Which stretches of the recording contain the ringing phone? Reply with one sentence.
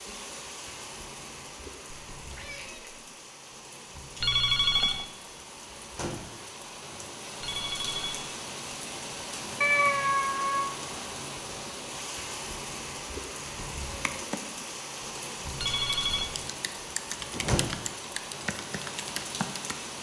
The ringing phone can be heard from 4.2 to 5.0 s, from 7.4 to 8.2 s and from 15.6 to 16.3 s.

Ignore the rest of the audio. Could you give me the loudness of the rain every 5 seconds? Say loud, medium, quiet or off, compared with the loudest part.
medium, loud, loud, loud.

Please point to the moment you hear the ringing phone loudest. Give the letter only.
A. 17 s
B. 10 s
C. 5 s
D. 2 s
C.